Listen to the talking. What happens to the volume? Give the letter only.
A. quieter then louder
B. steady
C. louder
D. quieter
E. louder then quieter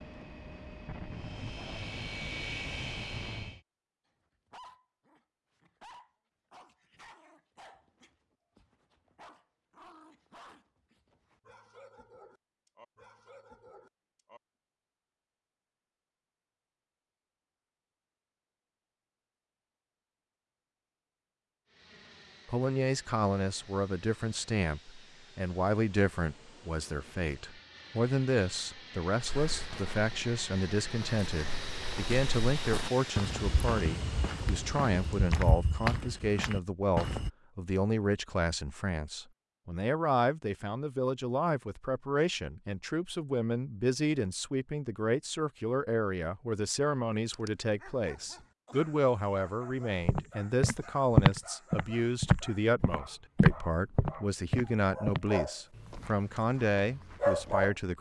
B.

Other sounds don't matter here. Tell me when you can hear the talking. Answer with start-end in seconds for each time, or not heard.
22.4-57.9.